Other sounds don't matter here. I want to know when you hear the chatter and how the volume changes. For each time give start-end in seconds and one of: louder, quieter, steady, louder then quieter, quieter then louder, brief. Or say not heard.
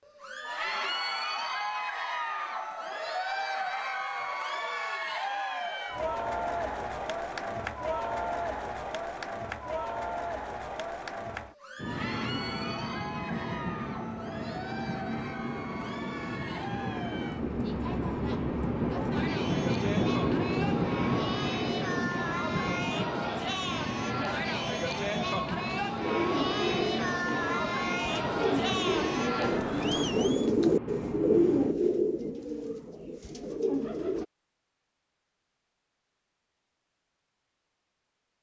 0.1-30.5 quieter then louder.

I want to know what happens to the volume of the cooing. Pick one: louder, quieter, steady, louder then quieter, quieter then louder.
louder then quieter.